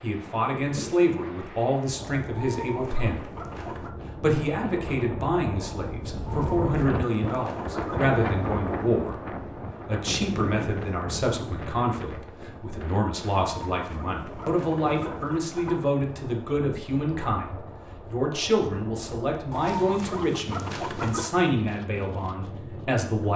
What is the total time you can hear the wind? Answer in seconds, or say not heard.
23 s.